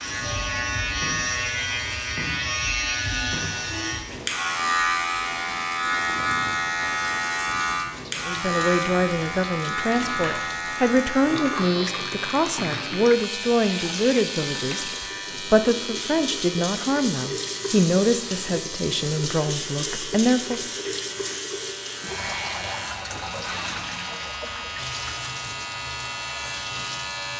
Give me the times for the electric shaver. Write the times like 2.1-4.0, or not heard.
0.0-27.3.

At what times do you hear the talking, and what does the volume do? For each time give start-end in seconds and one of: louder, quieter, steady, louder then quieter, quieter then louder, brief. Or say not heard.
8.2-20.6 steady.